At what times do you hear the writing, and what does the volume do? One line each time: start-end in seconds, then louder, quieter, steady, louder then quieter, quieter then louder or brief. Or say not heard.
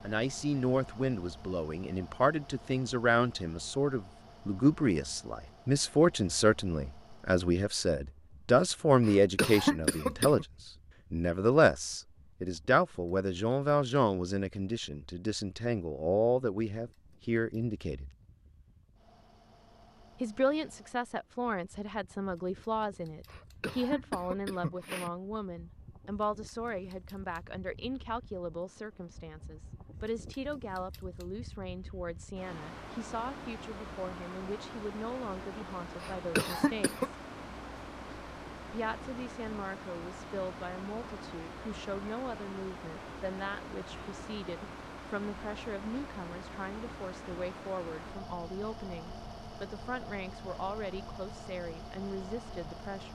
not heard.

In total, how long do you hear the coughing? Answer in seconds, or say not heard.
4 s.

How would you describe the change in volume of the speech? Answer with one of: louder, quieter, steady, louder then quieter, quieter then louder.
quieter.